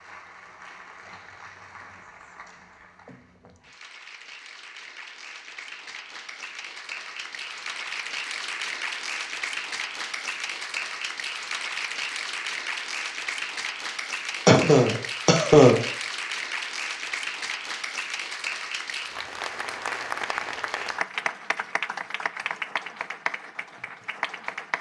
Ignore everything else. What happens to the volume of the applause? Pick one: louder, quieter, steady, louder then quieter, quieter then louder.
louder.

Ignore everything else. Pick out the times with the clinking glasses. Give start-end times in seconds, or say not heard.
not heard.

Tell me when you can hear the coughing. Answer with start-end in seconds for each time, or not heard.
14.4-15.8.